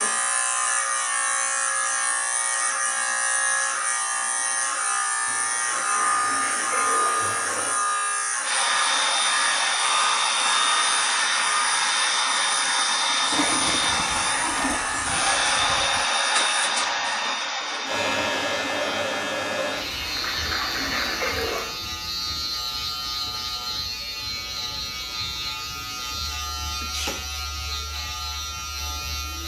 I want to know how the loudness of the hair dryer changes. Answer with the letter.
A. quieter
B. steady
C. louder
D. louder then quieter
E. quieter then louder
A.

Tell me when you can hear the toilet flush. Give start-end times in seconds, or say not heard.
5.2-7.8, 13.3-16.1, 19.8-21.8.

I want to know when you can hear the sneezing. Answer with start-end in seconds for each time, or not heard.
26.8-27.4.